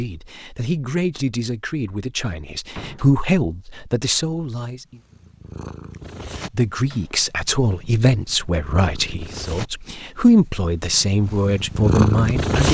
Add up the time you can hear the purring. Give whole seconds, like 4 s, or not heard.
8 s.